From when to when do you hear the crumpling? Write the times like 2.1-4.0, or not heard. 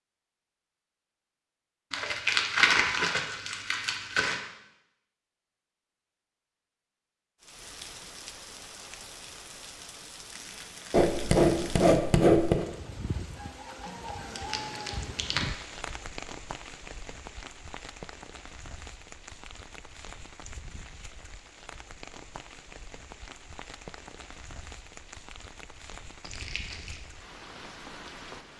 1.9-4.4, 13.8-15.7, 26.2-27.0.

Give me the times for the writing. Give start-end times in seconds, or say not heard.
10.9-12.7.